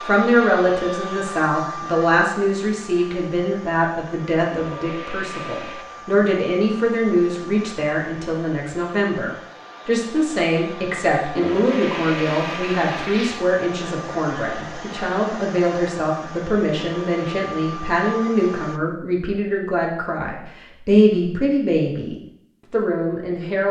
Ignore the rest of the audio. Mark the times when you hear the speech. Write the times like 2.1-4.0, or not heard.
0.0-23.6.